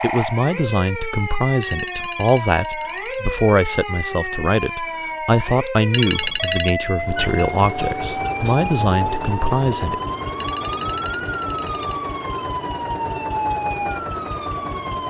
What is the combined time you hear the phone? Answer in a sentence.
The phone can be heard for 4 seconds in total.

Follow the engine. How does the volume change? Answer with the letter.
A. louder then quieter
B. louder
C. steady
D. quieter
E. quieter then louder
C.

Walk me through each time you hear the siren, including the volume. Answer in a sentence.
You can hear the siren from 0.0 to 15.0 s, at a steady volume.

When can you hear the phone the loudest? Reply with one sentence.
The loudest moment of the phone is at 6 seconds.